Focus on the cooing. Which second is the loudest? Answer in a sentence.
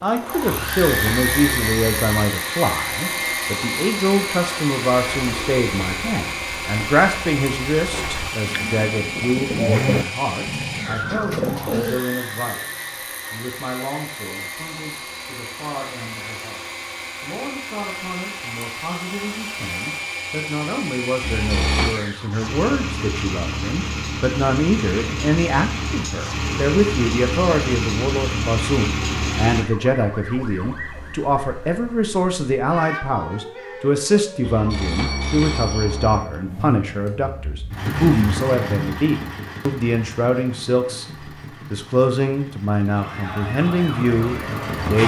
The volume of the cooing peaks at 10 seconds.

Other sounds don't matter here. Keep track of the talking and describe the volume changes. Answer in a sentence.
The volume of the talking goes down, then up.